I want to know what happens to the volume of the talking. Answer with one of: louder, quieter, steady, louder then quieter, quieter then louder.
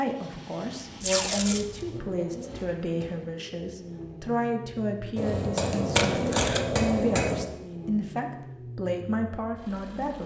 steady.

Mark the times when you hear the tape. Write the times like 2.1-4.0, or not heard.
1.0-1.9, 6.0-6.8.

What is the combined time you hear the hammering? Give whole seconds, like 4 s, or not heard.
2 s.